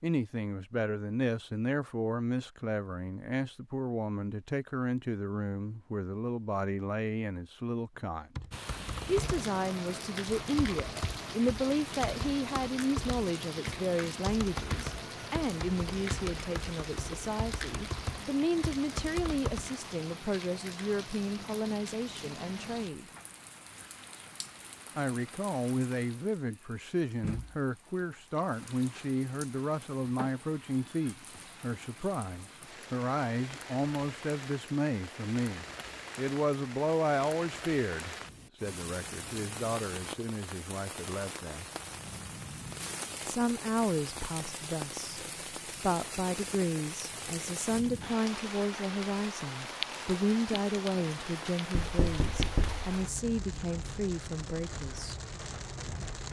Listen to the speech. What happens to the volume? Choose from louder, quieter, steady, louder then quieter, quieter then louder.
steady.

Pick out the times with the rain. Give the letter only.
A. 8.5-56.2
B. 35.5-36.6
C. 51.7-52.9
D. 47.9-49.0
A.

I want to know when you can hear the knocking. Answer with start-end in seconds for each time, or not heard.
51.7-52.9.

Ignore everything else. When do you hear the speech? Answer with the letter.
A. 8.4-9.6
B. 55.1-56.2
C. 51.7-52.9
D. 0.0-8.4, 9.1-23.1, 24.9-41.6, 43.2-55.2
D.